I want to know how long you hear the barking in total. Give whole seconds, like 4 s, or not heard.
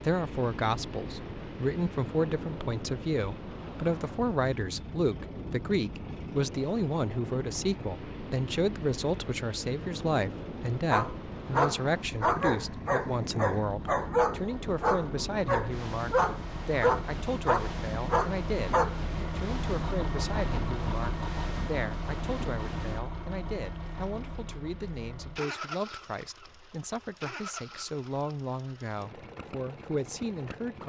8 s.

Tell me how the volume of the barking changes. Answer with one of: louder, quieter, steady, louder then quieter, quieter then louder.
steady.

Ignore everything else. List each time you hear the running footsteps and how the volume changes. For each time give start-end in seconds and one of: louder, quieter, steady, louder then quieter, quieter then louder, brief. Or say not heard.
not heard.